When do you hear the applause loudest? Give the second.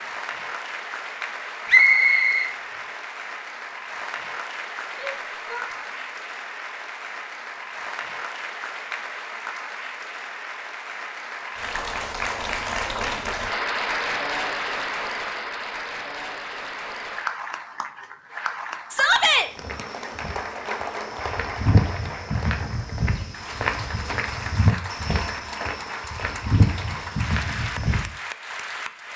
14 s.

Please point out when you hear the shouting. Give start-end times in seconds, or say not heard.
4.9-5.7, 18.9-19.5.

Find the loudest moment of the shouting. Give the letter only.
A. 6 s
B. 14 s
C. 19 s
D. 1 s
C.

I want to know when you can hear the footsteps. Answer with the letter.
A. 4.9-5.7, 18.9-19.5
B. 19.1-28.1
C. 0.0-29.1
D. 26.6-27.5
B.